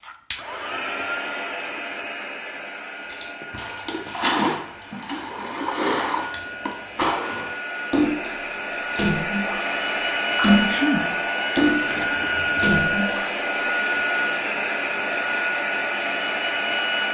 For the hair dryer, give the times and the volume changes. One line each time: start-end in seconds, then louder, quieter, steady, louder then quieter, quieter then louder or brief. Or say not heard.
0.0-17.0 quieter then louder.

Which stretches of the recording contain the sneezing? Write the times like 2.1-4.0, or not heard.
10.4-11.0.